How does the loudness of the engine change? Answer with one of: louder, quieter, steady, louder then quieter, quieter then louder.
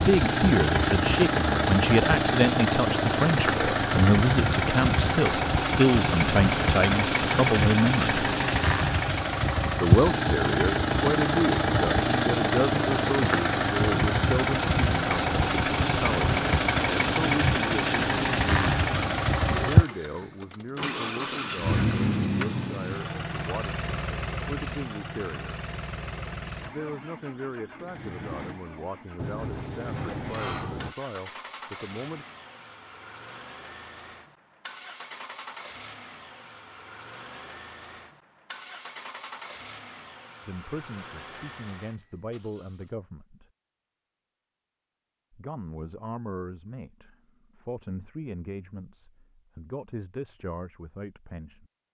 quieter.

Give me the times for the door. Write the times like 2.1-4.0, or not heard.
29.1-30.9.